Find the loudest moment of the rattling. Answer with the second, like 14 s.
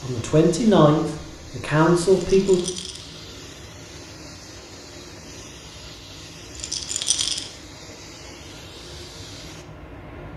7 s.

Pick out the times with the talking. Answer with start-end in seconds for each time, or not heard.
0.0-2.6.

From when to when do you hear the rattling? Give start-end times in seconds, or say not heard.
2.3-3.0, 6.5-7.5.